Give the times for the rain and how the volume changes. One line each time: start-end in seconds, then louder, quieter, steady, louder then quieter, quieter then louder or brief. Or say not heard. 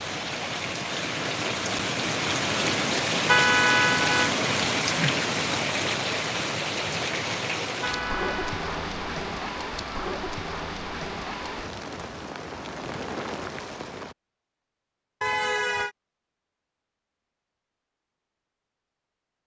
0.0-14.2 quieter.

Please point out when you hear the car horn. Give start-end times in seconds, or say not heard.
3.2-4.3, 7.8-8.6, 15.2-15.9.